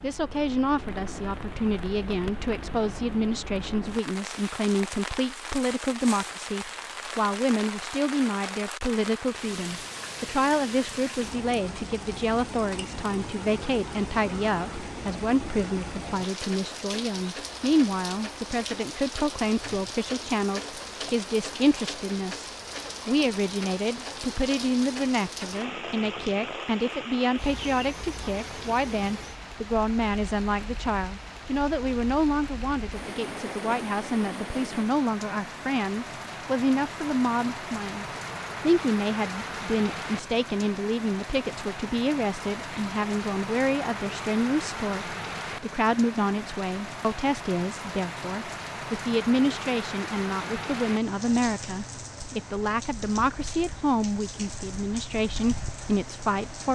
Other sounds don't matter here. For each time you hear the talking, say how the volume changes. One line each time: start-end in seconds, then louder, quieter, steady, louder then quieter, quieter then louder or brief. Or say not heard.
0.0-56.7 steady.